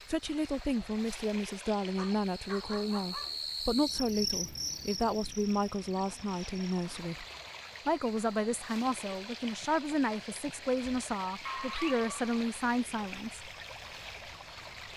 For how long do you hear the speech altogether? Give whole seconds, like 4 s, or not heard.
13 s.